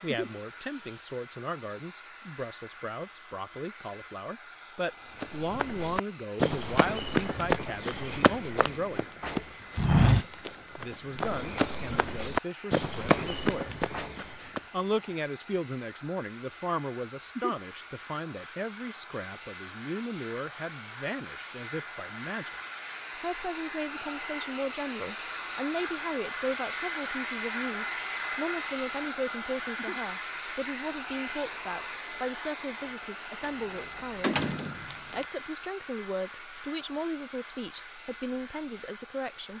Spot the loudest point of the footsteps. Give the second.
10 s.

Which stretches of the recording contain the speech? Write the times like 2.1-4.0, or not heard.
0.0-9.1, 10.8-22.6, 23.2-34.4, 35.1-39.5.